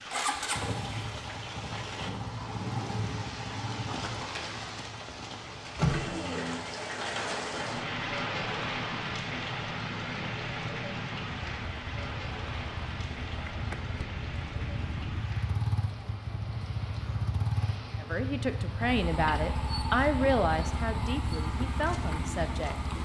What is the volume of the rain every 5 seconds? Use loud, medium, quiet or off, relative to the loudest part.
medium, loud, medium, quiet, quiet.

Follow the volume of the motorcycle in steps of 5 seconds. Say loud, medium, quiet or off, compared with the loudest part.
loud, medium, medium, loud, loud.